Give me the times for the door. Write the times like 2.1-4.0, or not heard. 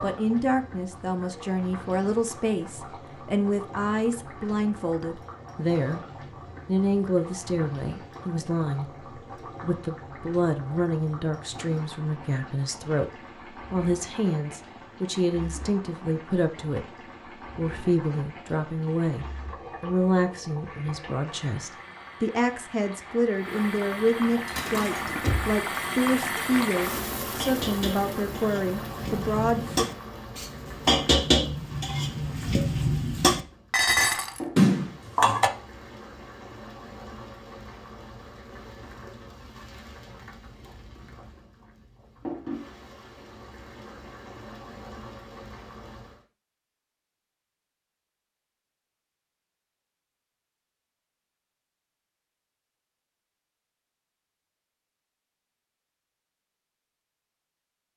24.5-25.6.